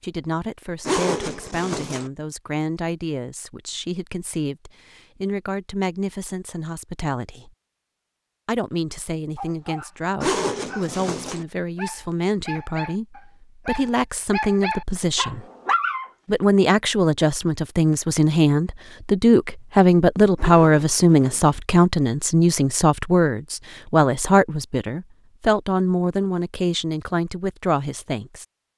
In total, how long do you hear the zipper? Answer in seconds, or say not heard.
4 s.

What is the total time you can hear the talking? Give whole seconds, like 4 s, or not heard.
27 s.